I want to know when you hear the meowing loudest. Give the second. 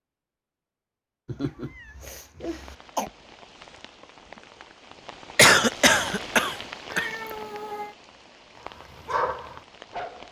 7 s.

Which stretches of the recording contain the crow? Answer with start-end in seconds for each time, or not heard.
not heard.